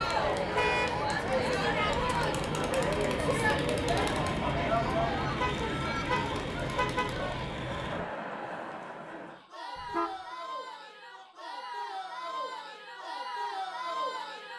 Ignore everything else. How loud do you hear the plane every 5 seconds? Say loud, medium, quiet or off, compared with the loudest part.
loud, loud, off.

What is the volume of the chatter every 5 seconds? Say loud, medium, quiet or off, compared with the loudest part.
loud, medium, medium.